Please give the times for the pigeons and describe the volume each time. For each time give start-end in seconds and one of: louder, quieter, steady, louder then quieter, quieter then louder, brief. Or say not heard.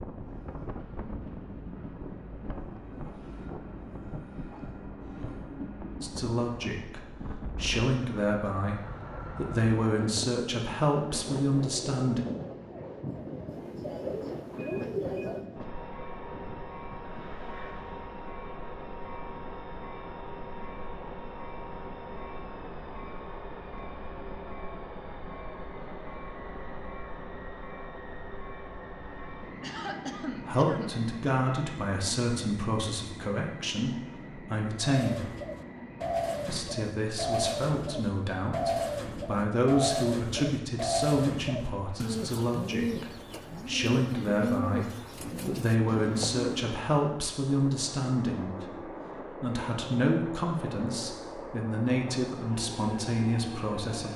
34.8-46.8 steady.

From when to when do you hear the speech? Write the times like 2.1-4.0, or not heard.
6.0-12.2, 30.4-35.3, 36.5-48.6, 49.4-54.1.